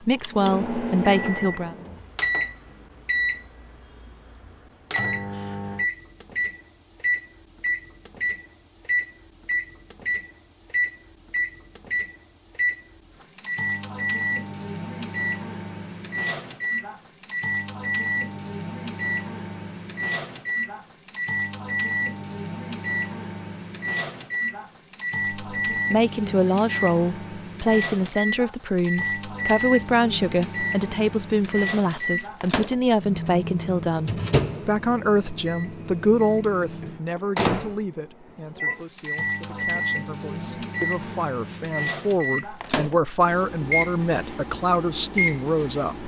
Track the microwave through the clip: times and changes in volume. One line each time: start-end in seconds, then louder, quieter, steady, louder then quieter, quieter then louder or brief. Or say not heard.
0.2-46.0 steady.